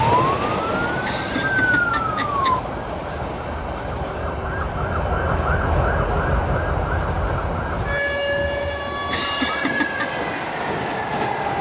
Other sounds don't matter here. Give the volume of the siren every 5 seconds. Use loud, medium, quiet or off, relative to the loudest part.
loud, loud, medium.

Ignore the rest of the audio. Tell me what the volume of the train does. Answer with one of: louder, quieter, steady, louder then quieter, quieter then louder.
quieter then louder.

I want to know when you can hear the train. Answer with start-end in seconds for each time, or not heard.
0.0-11.5.